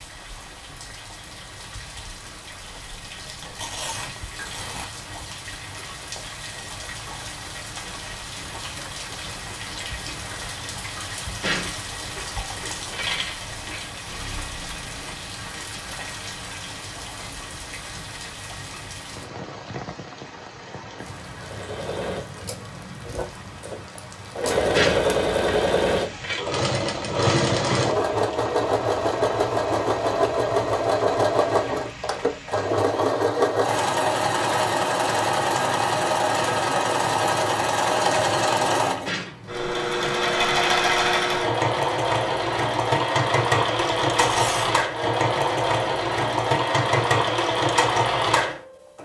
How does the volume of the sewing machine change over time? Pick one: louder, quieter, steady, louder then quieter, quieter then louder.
steady.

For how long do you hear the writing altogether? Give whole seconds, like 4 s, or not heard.
not heard.